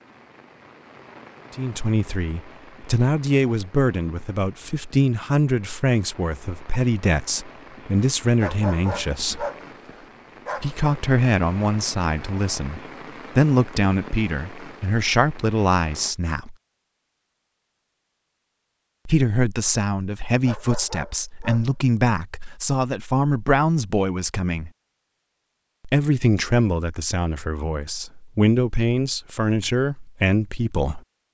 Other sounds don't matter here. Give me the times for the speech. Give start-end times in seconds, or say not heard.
1.6-9.4, 10.6-16.6, 19.1-24.7, 25.9-31.0.